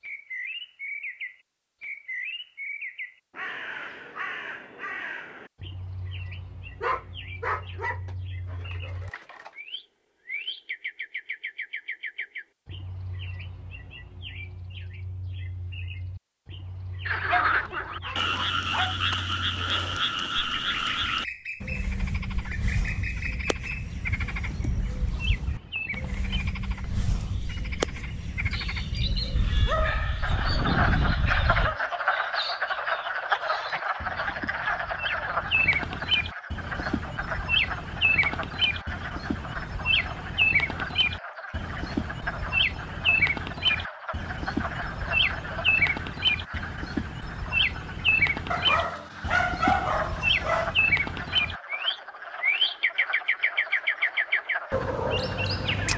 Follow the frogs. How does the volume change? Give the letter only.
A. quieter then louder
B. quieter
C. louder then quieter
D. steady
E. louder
B.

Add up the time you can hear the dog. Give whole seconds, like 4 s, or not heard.
9 s.